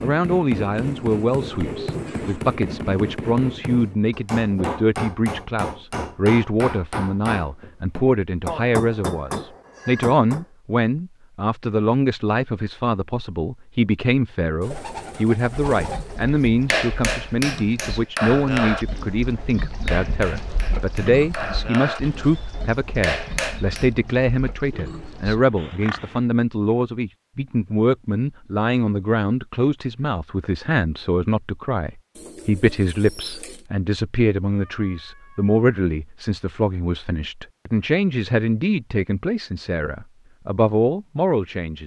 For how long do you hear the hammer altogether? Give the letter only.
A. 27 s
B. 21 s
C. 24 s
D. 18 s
D.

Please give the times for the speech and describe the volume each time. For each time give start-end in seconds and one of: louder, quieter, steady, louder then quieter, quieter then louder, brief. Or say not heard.
0.0-41.8 steady.